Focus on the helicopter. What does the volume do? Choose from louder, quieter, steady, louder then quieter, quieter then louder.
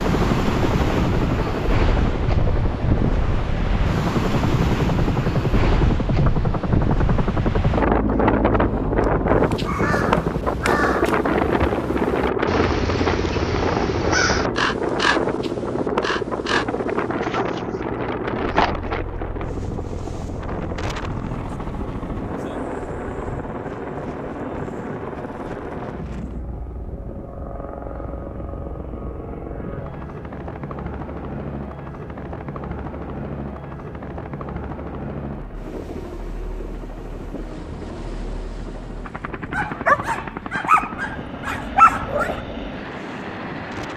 quieter.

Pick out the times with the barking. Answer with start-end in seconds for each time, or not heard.
17.2-17.6, 18.5-18.9, 39.5-42.4.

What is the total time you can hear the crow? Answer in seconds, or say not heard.
8 s.